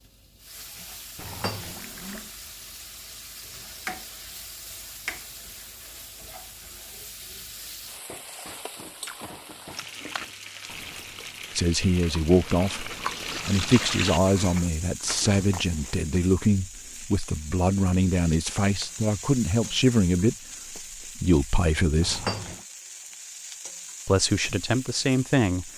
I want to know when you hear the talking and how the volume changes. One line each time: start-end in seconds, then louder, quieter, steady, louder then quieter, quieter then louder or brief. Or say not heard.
11.6-22.2 steady
24.1-25.7 brief.